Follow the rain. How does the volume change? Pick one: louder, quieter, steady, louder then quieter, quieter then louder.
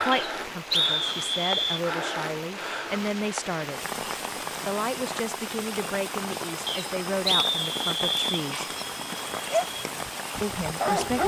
steady.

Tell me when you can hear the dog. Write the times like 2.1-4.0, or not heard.
8.5-11.2.